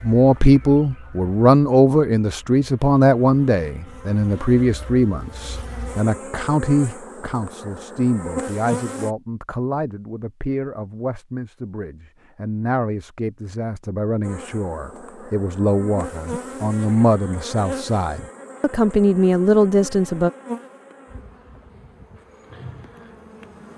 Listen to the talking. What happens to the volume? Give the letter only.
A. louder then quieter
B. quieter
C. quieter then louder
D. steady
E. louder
C.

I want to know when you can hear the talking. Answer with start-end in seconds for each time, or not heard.
0.0-20.3.